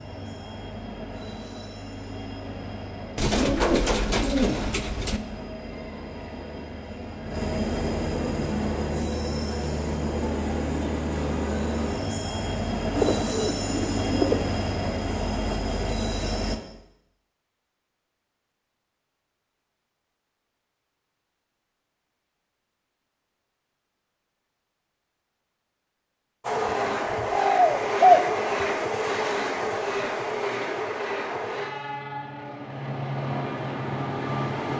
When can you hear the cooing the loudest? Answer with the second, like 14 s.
28 s.